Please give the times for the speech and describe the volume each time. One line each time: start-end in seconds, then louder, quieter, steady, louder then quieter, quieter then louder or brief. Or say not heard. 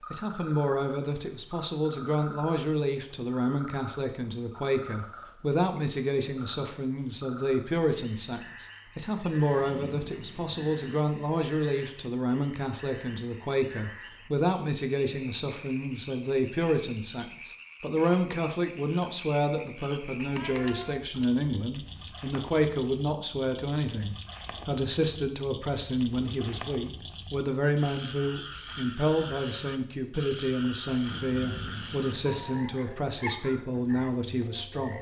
0.1-34.9 steady.